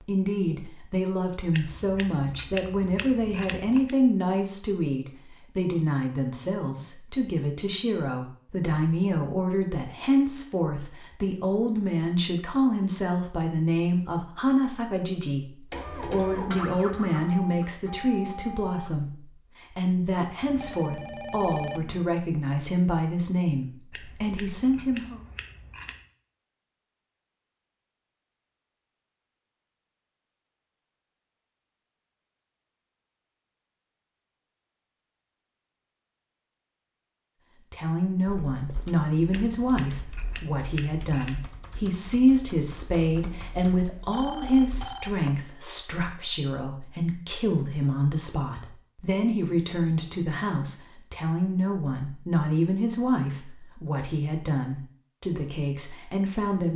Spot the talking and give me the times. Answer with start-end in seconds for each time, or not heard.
0.1-25.2, 37.7-56.7.